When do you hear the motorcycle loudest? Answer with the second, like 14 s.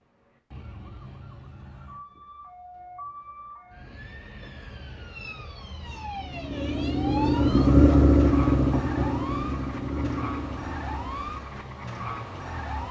8 s.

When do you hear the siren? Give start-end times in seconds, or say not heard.
0.1-12.8.